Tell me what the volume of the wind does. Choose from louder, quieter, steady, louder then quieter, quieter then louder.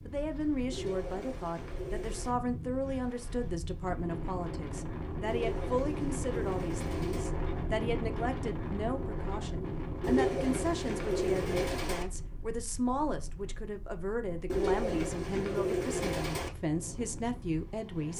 louder then quieter.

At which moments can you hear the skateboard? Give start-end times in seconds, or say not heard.
not heard.